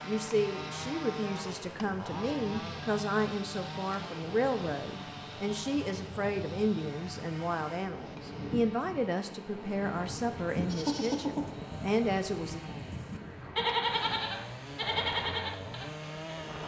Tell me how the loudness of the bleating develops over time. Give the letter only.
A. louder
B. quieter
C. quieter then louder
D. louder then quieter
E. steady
C.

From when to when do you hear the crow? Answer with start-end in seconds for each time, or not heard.
not heard.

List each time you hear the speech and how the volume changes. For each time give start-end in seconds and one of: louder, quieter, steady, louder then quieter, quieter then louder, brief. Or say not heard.
0.0-12.7 steady.